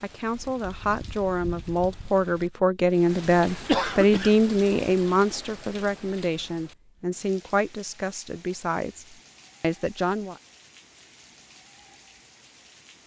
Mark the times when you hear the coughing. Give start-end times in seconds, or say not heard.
3.5-4.3.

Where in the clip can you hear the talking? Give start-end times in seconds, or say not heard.
0.0-10.4.